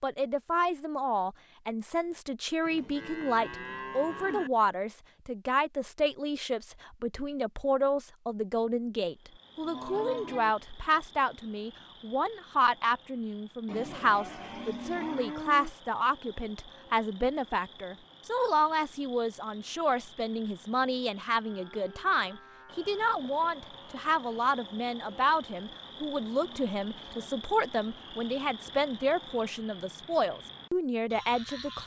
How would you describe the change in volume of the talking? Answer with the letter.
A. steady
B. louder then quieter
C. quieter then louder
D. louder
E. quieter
A.